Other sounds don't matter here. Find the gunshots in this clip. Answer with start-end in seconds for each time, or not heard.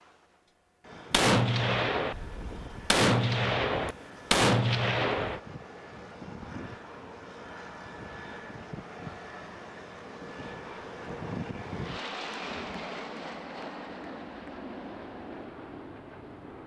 1.1-5.4.